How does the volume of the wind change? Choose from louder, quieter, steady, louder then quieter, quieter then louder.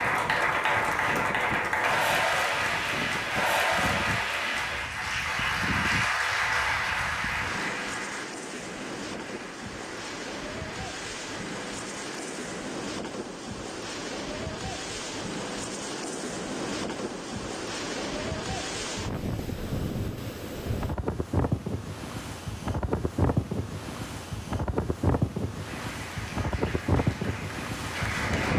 louder.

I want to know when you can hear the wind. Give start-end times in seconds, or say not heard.
0.0-28.5.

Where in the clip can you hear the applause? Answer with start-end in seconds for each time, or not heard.
0.0-12.6, 25.5-28.5.